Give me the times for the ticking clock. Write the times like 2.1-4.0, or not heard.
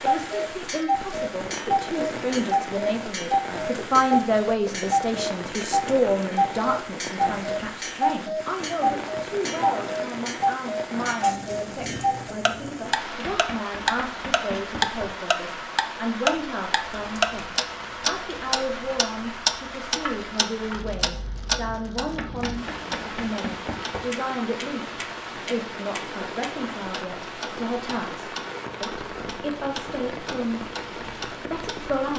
0.0-32.1.